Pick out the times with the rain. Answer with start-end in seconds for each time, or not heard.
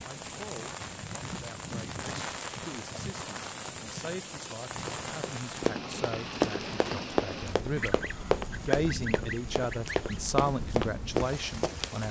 0.0-12.0.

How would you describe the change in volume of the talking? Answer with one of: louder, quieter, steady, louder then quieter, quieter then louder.
louder.